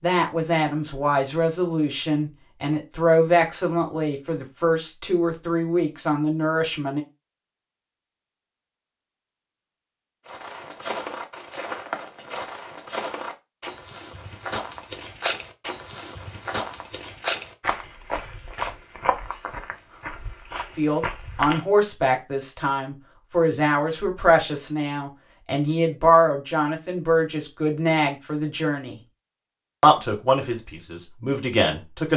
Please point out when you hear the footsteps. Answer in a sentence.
You can hear the footsteps from 10.2 to 21.6 s.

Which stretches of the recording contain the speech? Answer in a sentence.
You can hear the speech from 0.0 to 7.0 s, from 20.8 to 29.0 s and from 29.8 to 32.1 s.